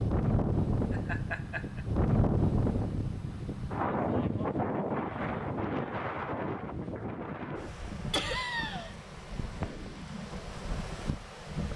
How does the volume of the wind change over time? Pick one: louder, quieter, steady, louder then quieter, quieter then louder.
quieter.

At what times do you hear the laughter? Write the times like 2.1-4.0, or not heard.
0.9-1.8, 8.1-8.9.